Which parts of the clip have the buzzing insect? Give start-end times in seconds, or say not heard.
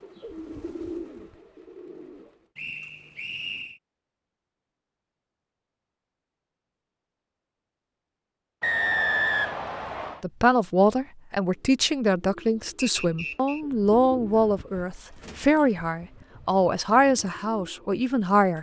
not heard.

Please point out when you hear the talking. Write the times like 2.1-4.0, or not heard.
10.2-18.5.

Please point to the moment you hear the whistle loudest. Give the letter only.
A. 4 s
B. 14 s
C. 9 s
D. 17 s
C.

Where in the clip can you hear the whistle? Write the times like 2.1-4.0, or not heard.
2.5-3.8, 8.6-10.2, 12.8-13.7.